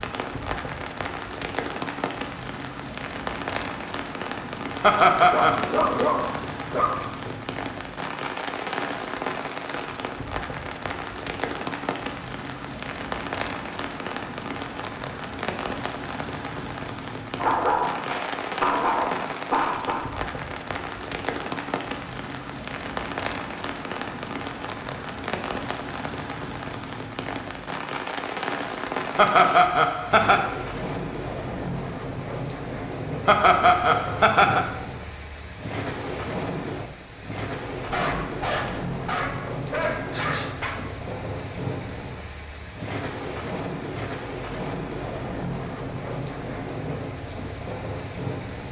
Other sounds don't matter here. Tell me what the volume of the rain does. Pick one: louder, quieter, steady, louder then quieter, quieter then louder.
steady.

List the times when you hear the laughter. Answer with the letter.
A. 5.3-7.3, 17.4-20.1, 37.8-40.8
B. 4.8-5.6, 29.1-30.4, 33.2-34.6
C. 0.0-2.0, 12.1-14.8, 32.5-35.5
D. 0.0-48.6
B.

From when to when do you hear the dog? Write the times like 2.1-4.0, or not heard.
5.3-7.3, 17.4-20.1, 37.8-40.8.